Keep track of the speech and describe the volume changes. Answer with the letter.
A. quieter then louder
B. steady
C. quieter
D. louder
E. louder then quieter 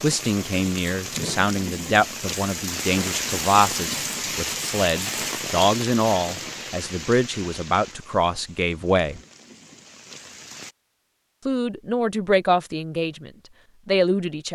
B.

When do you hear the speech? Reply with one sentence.
You can hear the speech from 0.0 to 9.2 s and from 11.4 to 14.5 s.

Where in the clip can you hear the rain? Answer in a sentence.
The rain can be heard from 0.0 to 10.8 s.